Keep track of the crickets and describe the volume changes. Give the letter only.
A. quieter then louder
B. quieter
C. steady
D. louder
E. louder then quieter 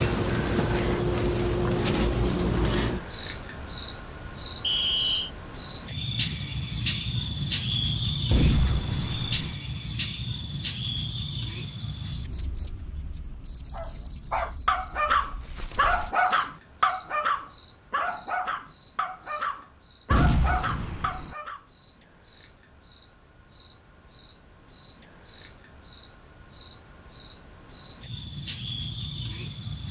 A.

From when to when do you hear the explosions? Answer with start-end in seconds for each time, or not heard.
8.3-9.6, 20.1-21.4.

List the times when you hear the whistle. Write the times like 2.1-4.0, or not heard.
4.6-5.3.